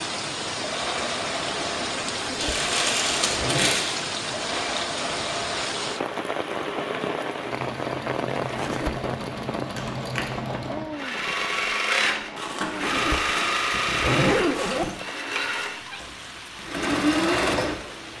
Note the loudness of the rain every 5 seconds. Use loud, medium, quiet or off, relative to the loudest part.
loud, loud, medium, medium.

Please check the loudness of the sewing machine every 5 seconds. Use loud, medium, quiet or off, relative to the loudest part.
medium, medium, loud, loud.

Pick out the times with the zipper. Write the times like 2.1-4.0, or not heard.
2.1-3.9, 8.3-9.1, 12.6-14.9.